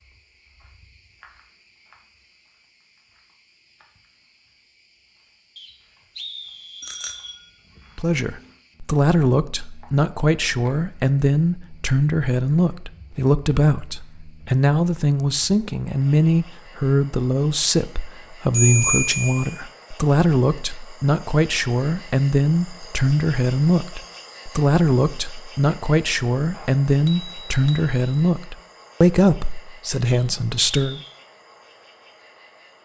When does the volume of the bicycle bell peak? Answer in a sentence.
The volume of the bicycle bell peaks at 19 seconds.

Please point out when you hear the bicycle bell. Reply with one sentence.
The bicycle bell can be heard from 6.8 to 7.3 s, from 18.5 to 19.6 s and from 26.5 to 28.3 s.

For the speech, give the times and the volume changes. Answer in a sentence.
You can hear the speech from 8.0 to 31.0 s, at a steady volume.